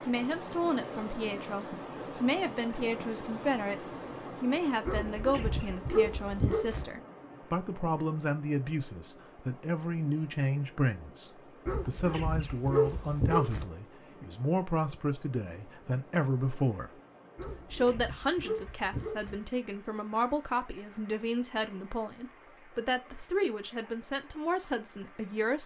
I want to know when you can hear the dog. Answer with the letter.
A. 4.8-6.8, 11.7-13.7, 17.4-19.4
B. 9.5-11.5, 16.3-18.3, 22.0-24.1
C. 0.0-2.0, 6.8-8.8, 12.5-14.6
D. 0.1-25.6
A.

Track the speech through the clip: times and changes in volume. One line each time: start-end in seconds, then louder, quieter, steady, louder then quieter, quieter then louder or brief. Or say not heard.
0.1-25.6 steady.